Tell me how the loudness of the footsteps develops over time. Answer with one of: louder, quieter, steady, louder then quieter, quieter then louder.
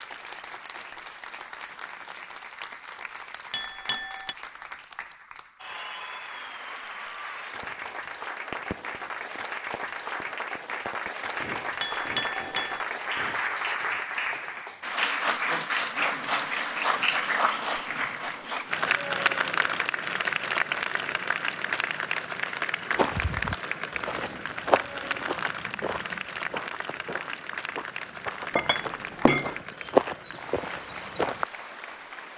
quieter then louder.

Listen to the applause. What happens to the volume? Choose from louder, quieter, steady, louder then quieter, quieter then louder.
louder then quieter.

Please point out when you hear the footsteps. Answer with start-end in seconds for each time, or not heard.
22.9-31.4.